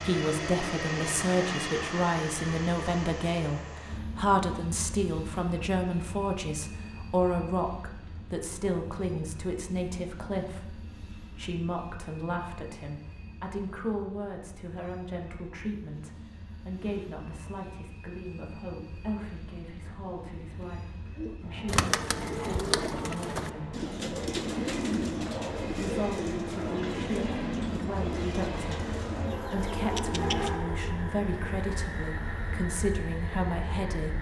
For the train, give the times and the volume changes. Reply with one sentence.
You can hear the train from 0.0 to 34.1 s, getting quieter then louder.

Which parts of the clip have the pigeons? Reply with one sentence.
You can hear the pigeons from 21.1 to 30.6 s.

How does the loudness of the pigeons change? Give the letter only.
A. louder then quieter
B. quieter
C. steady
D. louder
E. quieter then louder
B.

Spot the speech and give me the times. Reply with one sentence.
The speech can be heard from 0.0 to 23.8 s and from 25.7 to 34.1 s.